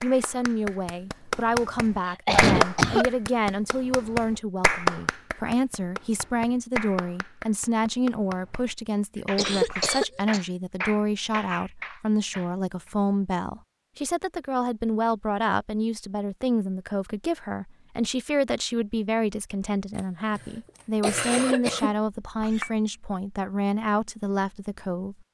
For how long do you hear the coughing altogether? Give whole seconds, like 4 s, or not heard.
4 s.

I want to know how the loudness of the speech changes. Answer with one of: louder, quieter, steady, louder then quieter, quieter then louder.
steady.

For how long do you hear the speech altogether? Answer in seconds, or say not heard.
25 s.